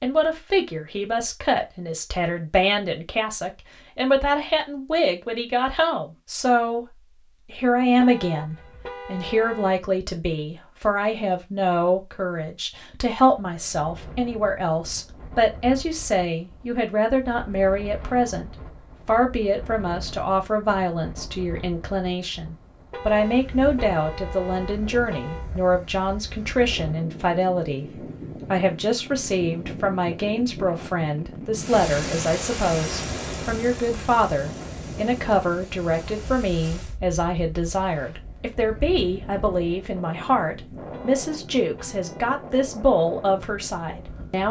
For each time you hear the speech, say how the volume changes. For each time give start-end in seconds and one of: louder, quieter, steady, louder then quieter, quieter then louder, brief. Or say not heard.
0.0-44.4 steady.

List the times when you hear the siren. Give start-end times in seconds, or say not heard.
not heard.